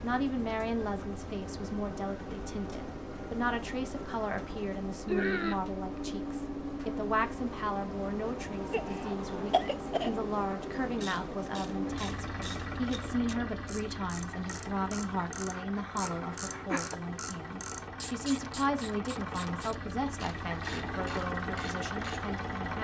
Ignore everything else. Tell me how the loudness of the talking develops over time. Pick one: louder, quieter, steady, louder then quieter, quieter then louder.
steady.